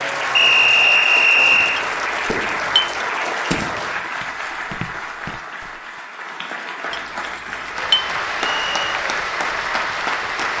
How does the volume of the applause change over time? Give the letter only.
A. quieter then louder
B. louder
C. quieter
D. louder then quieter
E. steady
A.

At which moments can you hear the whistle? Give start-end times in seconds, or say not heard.
0.3-1.9, 8.6-9.0.